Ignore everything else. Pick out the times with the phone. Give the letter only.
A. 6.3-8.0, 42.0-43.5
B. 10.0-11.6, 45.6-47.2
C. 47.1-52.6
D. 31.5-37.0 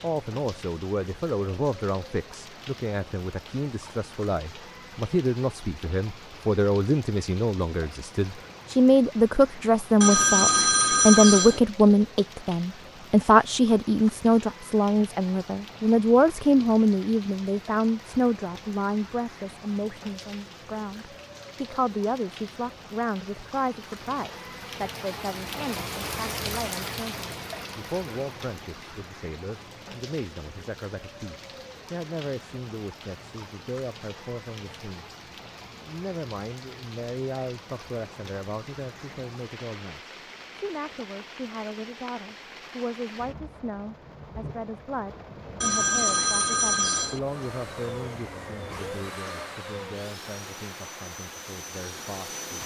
B.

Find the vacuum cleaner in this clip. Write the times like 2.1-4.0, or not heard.
47.1-52.6.